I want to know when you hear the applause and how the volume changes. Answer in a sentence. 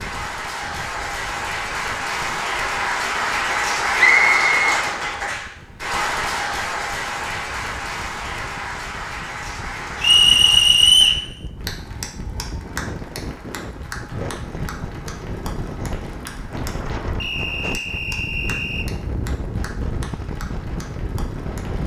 The applause can be heard from 0.0 to 21.8 s, getting quieter.